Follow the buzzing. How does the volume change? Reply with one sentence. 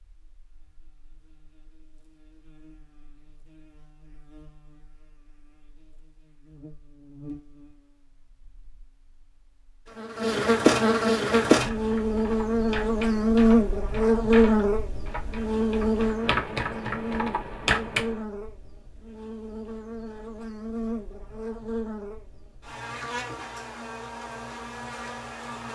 The volume of the buzzing goes up, then down.